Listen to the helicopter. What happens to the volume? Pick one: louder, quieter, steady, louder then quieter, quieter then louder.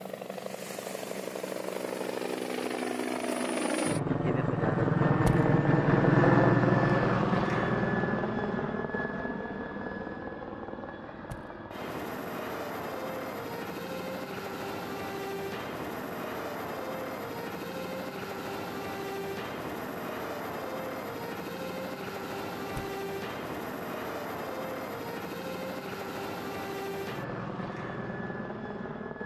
quieter.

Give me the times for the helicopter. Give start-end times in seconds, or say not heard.
0.0-29.2.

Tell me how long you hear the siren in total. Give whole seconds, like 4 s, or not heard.
not heard.